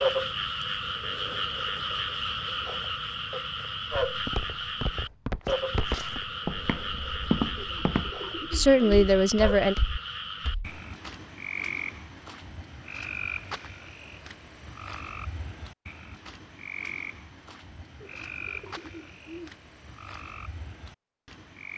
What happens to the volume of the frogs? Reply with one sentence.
The loudness of the frogs goes down.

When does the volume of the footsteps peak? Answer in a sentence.
The loudest moment of the footsteps is at 7 seconds.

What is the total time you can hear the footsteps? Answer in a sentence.
The footsteps can be heard for 7 seconds in total.